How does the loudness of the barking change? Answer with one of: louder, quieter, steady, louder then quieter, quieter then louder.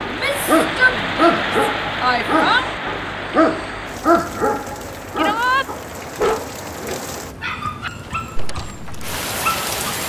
quieter.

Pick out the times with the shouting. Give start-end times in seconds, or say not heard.
0.1-2.7, 5.2-5.7.